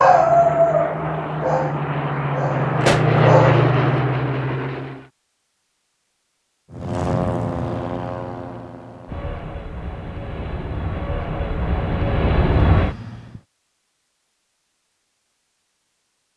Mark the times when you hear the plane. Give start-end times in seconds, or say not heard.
0.0-5.1, 6.7-13.4.